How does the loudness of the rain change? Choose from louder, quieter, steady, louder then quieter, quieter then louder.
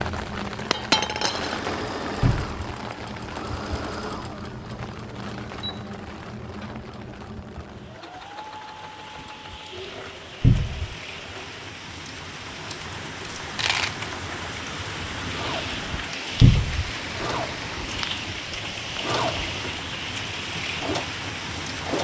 quieter then louder.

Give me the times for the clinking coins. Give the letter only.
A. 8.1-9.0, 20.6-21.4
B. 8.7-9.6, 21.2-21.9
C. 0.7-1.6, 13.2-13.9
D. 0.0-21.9
C.